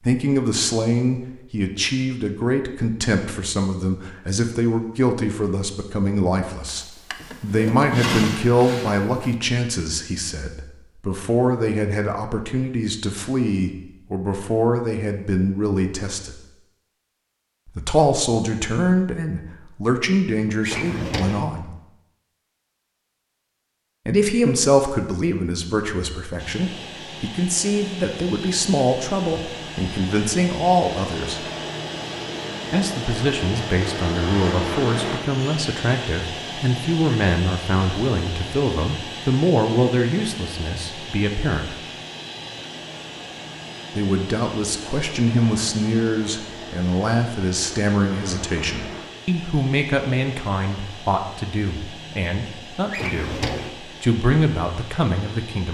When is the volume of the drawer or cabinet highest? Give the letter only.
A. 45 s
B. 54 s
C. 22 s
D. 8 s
D.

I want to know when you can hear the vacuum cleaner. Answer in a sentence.
You can hear the vacuum cleaner from 26.4 to 55.6 s.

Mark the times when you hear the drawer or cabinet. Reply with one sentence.
The drawer or cabinet can be heard from 6.7 to 9.3 s, from 20.6 to 21.5 s and from 52.9 to 53.8 s.